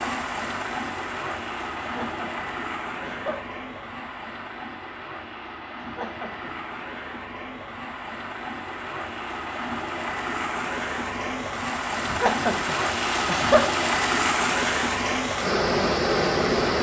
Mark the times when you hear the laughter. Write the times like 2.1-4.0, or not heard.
1.8-3.4, 5.8-6.5, 12.1-13.7.